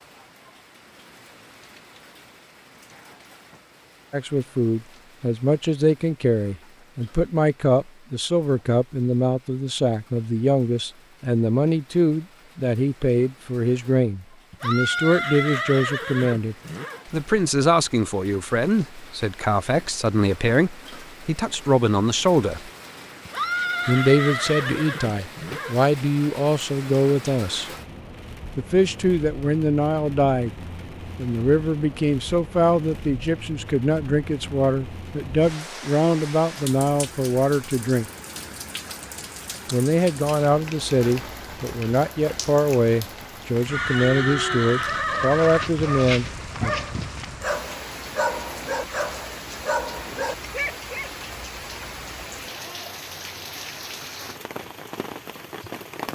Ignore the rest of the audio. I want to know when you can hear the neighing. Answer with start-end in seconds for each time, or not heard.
14.5-17.1, 23.2-25.8, 43.6-45.7.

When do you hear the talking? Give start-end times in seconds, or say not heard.
4.1-22.7, 23.9-27.7, 28.6-30.6, 31.1-38.1, 39.7-46.8.